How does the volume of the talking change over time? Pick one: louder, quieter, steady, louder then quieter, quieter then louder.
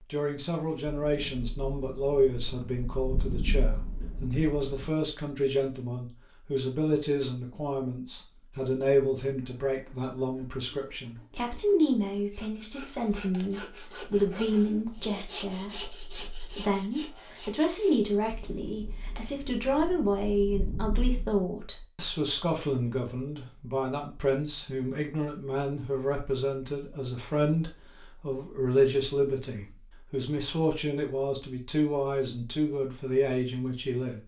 steady.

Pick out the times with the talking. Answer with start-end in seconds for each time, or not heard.
0.1-34.2.